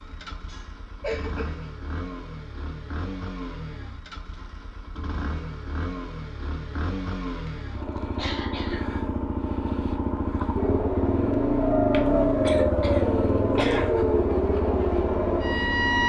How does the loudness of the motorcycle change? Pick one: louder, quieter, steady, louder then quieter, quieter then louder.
louder.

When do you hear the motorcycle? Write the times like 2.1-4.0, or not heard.
0.0-16.0.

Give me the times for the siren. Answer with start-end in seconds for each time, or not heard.
10.6-16.0.